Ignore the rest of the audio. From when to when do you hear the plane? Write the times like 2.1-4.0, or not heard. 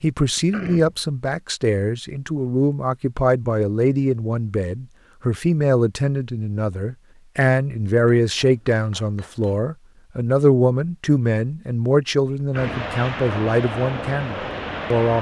12.5-15.1.